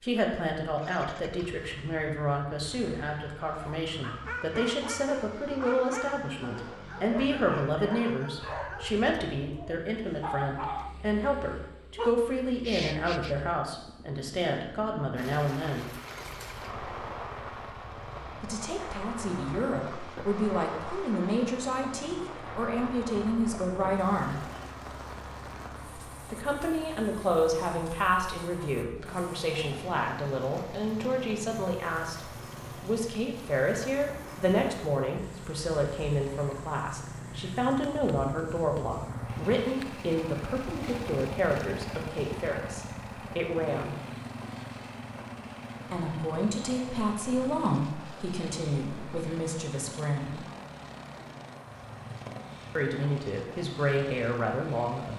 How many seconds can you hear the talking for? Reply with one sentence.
You can hear the talking for 46 seconds altogether.